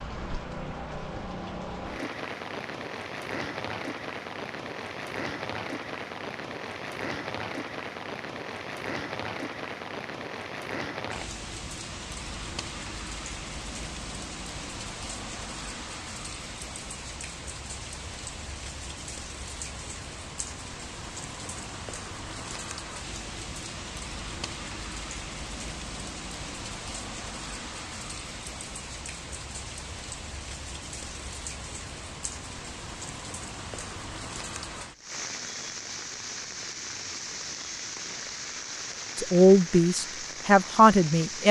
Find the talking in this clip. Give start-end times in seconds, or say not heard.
39.1-41.4.